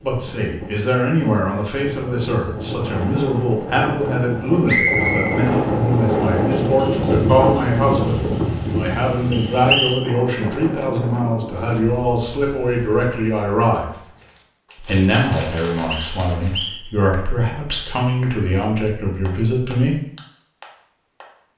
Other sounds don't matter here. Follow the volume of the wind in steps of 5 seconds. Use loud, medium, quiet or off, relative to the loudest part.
medium, loud, medium, off, off.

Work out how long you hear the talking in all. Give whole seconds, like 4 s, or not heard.
19 s.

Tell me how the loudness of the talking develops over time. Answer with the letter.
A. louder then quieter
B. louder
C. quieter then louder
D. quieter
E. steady
E.